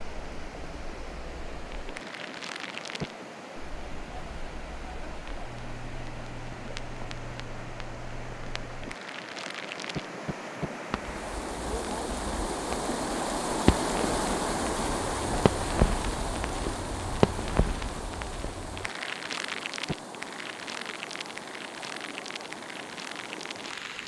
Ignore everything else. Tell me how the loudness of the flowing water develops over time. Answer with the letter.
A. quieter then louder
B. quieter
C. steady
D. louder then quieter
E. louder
D.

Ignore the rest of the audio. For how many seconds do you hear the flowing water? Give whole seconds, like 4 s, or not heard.
24 s.